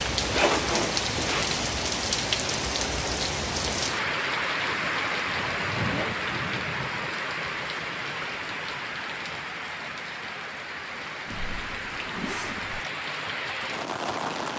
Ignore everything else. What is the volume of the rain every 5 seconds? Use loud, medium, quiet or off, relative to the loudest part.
loud, loud, medium.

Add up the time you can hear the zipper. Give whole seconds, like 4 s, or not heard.
3 s.